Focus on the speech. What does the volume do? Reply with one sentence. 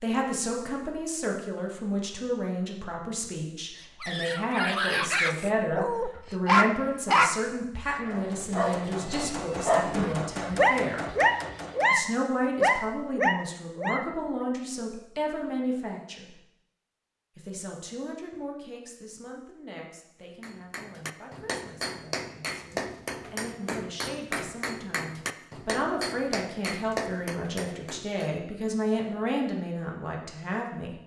The volume of the speech goes down, then up.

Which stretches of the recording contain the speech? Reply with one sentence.
The speech can be heard from 0.0 to 11.1 s, from 11.9 to 16.3 s and from 17.4 to 30.9 s.